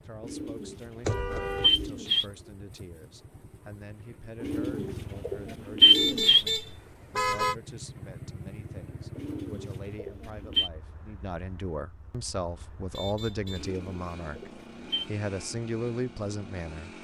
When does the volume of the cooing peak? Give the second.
6 s.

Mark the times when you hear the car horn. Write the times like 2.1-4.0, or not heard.
1.0-1.9, 5.9-7.5, 12.9-13.8.